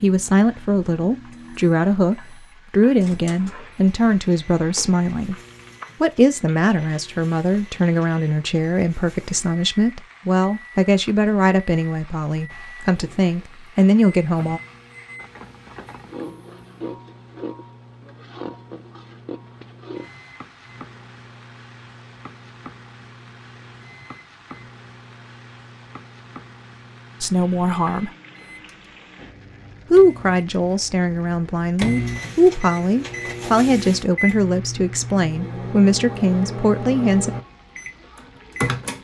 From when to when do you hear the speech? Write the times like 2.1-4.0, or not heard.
0.0-5.3, 6.0-14.6, 27.2-28.1, 29.9-37.3.